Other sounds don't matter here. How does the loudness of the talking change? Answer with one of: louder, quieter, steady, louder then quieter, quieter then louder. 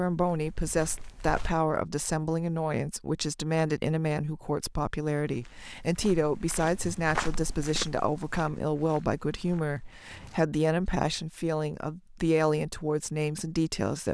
steady.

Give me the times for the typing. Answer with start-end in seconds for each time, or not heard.
not heard.